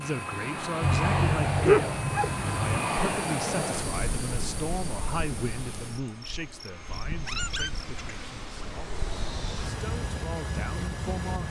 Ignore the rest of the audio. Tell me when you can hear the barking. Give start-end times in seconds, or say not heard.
0.8-2.8, 7.0-8.8.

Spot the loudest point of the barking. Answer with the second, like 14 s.
2 s.